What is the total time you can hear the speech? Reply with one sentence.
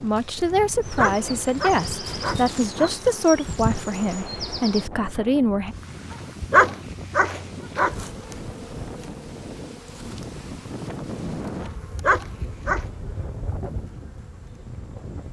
You can hear the speech for 6 seconds altogether.